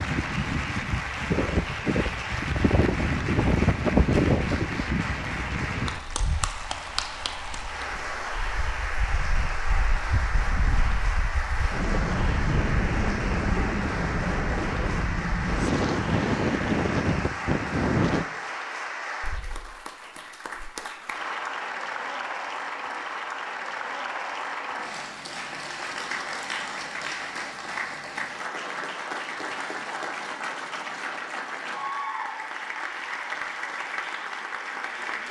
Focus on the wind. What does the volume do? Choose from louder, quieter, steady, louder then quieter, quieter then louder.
quieter then louder.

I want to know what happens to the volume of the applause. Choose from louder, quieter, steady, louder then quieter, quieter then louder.
steady.